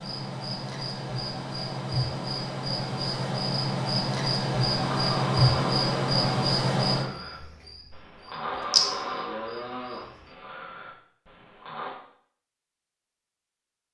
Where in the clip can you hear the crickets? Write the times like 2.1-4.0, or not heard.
0.0-10.2.